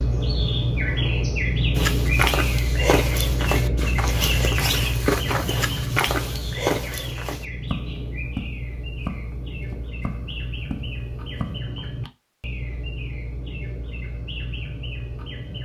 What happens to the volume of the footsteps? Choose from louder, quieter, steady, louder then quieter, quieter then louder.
quieter.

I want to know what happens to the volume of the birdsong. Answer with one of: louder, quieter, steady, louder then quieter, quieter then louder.
quieter.